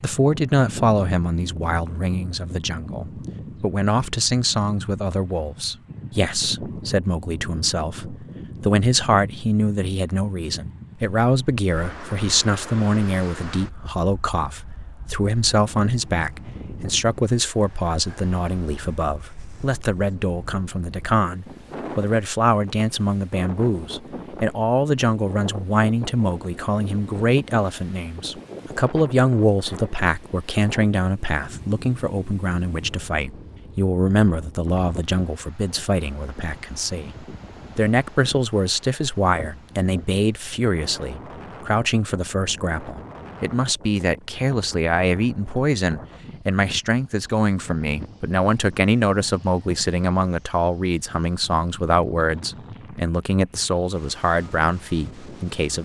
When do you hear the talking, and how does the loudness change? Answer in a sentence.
You can hear the talking from 0.0 to 55.8 s, at a steady volume.